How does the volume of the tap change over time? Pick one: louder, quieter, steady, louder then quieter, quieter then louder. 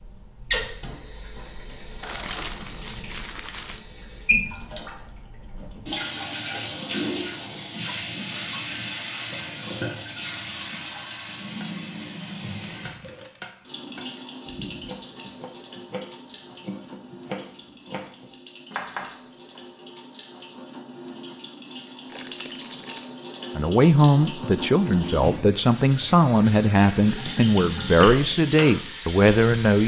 quieter then louder.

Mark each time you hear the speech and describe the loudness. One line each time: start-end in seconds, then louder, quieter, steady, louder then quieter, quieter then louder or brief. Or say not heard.
23.6-29.8 steady.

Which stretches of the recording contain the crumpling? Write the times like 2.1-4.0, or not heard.
2.0-3.9, 12.8-13.4, 22.1-23.1.